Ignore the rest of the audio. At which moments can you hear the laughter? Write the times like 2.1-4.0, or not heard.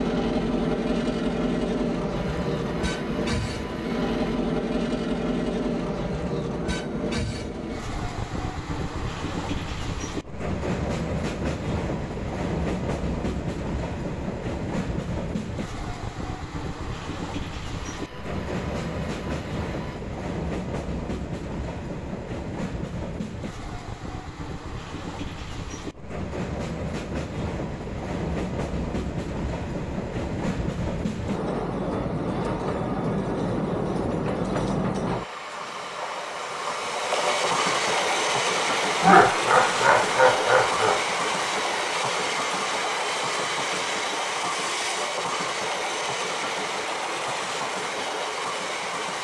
2.1-4.3, 17.8-20.0, 39.0-41.0.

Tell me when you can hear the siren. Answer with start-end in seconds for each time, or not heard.
not heard.